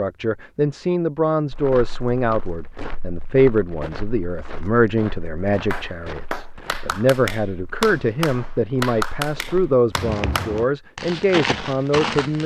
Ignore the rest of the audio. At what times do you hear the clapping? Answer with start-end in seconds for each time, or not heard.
5.7-10.7.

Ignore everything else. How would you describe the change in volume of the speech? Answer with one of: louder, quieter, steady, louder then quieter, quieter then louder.
steady.